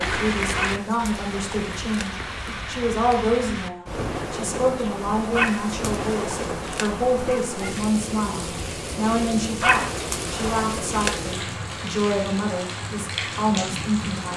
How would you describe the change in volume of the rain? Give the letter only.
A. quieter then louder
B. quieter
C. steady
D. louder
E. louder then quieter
C.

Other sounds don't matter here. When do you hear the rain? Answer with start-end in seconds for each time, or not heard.
0.0-14.3.